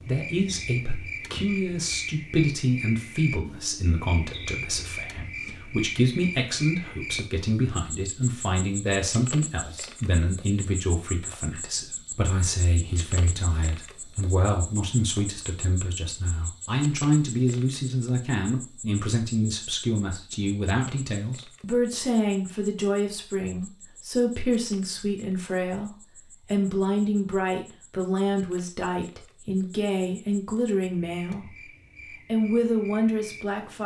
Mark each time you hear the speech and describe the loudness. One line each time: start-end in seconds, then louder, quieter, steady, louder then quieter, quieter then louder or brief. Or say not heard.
0.0-31.6 steady
32.3-33.8 brief.